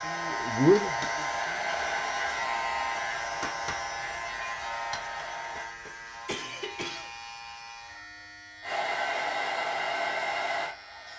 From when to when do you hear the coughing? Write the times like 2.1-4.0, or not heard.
6.2-7.2.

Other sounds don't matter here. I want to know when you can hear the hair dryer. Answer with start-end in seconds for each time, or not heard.
0.0-5.7, 8.6-11.1.